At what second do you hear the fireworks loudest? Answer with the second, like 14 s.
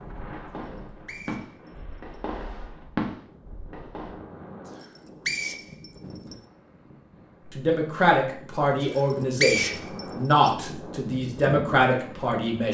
3 s.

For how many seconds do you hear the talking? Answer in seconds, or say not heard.
5 s.